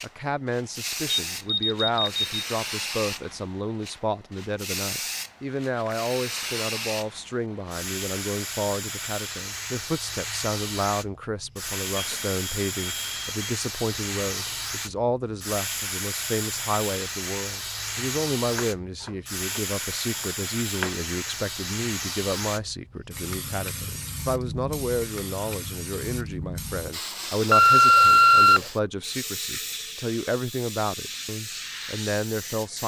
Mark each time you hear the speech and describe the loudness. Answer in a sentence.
The speech can be heard from 0.0 to 32.8 s, at a steady volume.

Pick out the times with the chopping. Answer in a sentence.
You can hear the chopping from 18.5 to 21.1 s.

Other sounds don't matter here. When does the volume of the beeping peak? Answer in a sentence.
The loudest moment of the beeping is at 28 seconds.